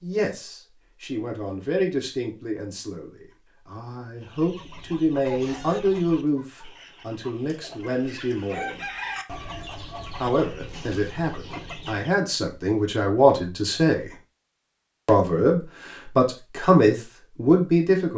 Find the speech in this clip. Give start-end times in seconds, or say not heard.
0.0-8.9, 10.2-14.1, 15.1-18.1.